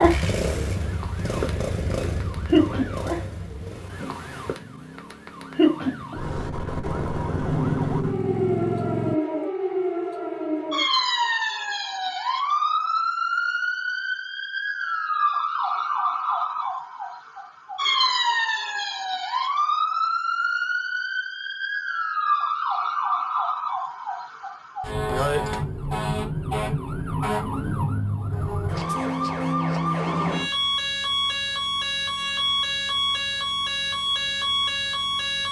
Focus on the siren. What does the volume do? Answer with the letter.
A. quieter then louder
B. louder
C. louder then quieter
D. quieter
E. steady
E.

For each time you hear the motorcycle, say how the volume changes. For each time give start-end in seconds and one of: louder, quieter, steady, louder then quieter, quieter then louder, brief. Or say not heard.
0.0-9.2 quieter then louder.